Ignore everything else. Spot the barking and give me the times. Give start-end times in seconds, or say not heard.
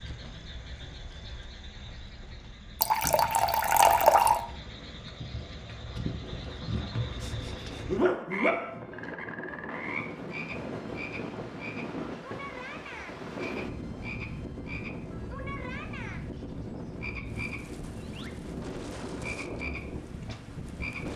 7.2-8.8.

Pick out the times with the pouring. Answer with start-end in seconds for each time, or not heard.
2.8-4.4.